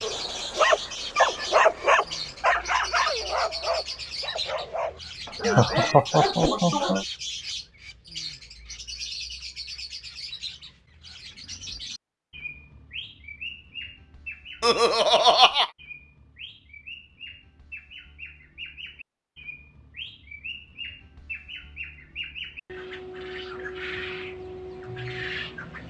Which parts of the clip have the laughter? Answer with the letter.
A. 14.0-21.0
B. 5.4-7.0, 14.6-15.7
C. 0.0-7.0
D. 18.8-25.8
B.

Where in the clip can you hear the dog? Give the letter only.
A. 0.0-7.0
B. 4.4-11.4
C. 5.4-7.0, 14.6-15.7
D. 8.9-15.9
A.